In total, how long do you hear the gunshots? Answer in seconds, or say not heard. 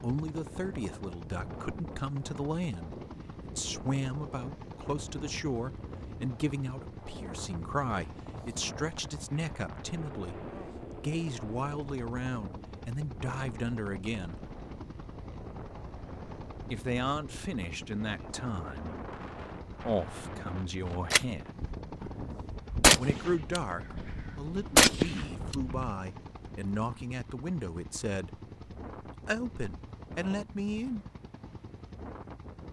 5 s.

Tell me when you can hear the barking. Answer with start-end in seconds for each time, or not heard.
not heard.